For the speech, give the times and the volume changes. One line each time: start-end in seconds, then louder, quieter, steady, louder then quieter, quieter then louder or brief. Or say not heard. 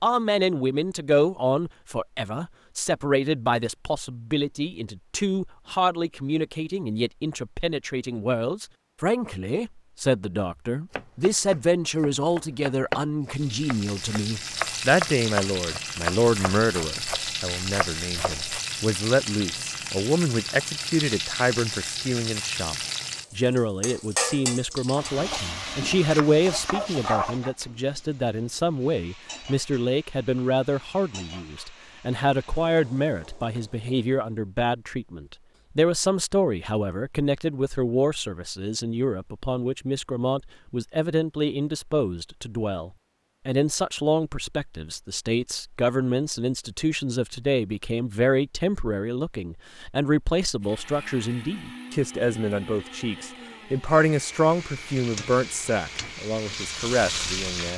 0.0-57.7 steady.